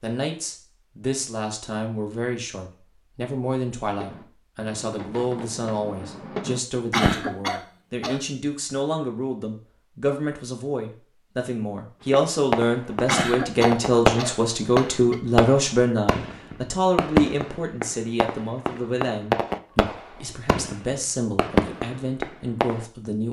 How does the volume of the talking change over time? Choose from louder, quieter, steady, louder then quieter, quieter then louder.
louder then quieter.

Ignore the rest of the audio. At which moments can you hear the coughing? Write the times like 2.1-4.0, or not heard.
6.9-8.2, 13.1-15.2.